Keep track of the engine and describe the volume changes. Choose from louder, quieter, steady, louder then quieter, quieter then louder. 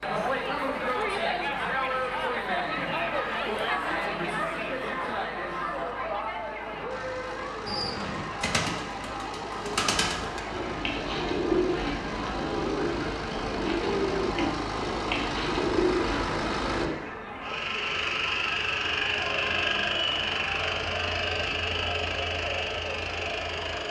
louder.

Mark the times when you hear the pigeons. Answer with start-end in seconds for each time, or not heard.
7.7-16.9.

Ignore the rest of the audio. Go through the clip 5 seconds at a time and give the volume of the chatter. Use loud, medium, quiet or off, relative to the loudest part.
loud, medium, medium, medium, medium.